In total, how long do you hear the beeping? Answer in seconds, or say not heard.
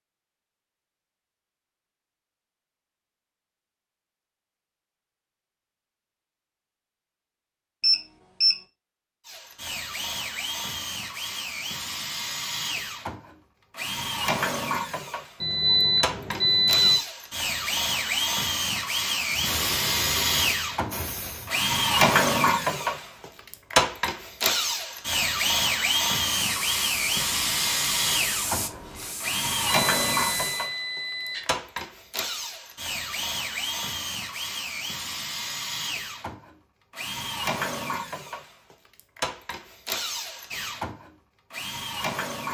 4 s.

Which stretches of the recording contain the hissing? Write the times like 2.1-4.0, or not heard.
19.2-21.6, 26.4-30.7.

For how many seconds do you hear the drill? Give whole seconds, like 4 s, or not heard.
33 s.